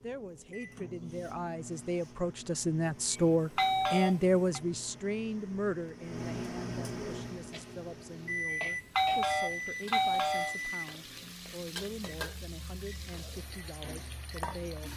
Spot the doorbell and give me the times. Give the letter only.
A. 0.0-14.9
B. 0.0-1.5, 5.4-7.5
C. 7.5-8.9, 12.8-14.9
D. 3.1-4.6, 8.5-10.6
D.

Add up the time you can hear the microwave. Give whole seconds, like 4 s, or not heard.
15 s.